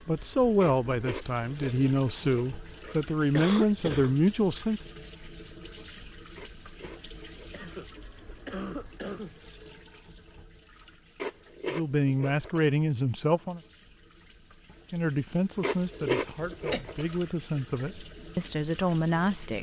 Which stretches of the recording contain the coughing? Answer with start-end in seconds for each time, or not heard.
3.4-4.1, 7.5-9.3, 16.2-16.9.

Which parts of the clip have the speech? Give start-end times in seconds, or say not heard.
0.1-4.8, 11.7-13.6, 14.9-19.5.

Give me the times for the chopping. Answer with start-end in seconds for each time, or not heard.
not heard.